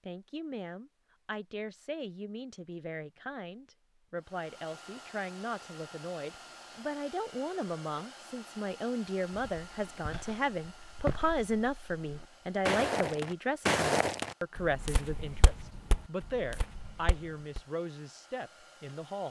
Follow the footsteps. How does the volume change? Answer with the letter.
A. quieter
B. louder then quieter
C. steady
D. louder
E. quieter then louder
B.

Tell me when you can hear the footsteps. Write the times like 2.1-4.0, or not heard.
9.3-17.6.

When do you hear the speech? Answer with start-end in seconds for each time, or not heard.
0.1-19.2.